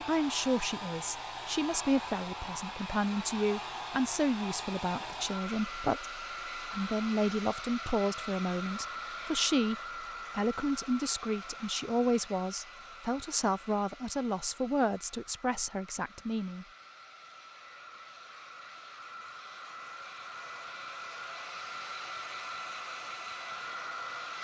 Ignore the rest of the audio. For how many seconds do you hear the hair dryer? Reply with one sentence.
You can hear the hair dryer for 24 seconds altogether.